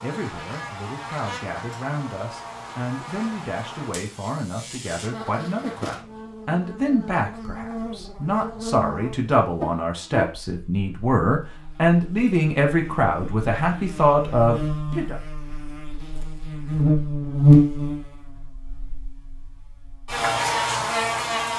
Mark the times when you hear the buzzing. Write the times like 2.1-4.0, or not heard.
0.0-21.5.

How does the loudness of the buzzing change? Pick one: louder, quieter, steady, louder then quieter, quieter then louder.
louder.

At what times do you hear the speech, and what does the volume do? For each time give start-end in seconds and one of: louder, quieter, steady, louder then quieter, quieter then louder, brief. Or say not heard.
0.0-15.2 louder.